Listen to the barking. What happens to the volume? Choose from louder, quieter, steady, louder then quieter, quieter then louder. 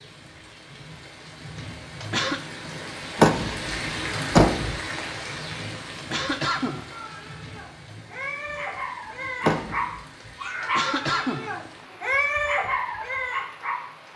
louder.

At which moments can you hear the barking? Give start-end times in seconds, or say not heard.
6.9-14.1.